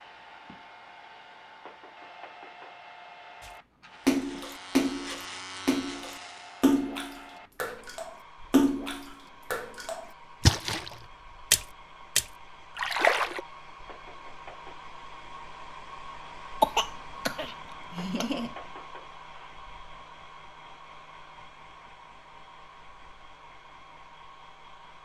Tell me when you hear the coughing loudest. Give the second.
17 s.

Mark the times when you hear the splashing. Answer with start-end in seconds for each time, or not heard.
3.4-13.4.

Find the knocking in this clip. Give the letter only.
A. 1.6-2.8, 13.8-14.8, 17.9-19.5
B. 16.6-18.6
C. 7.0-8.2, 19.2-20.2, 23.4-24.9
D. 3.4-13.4
A.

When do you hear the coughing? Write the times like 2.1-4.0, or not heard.
16.6-18.6.